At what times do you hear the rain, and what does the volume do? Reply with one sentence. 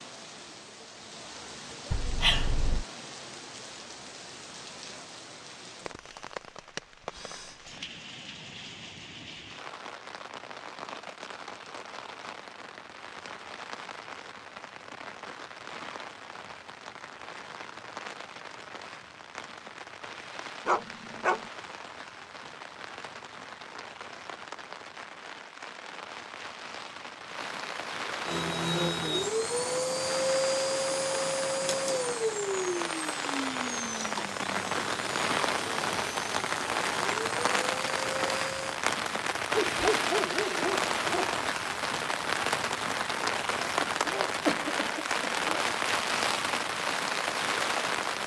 The rain can be heard from 0.0 to 48.2 s, getting louder.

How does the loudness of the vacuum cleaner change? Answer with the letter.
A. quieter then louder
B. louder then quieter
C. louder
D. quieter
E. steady
D.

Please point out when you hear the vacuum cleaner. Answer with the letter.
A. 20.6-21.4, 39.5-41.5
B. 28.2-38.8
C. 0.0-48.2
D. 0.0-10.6
B.